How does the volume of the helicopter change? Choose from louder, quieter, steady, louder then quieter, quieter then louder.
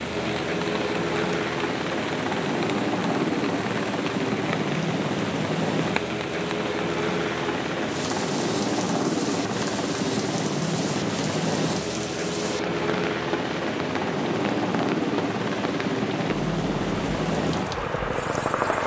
steady.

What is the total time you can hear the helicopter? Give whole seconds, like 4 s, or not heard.
19 s.